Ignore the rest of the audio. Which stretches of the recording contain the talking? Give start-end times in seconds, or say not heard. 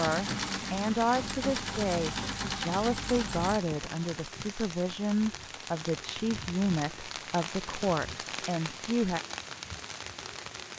0.0-9.2.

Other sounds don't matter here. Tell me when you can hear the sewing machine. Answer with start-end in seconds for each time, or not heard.
0.0-3.6.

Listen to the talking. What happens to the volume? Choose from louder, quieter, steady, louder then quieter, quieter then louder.
steady.